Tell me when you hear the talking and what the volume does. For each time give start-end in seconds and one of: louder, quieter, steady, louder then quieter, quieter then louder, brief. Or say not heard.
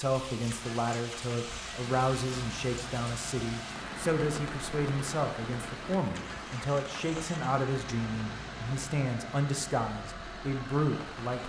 0.0-11.4 steady.